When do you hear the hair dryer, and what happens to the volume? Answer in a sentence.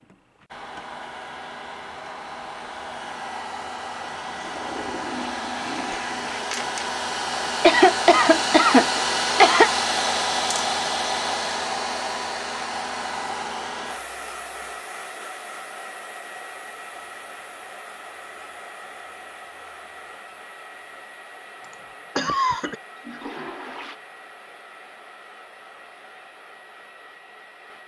You can hear the hair dryer from 0.0 to 27.8 s, getting louder then quieter.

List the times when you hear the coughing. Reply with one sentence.
You can hear the coughing from 7.6 to 9.7 s and from 21.7 to 22.8 s.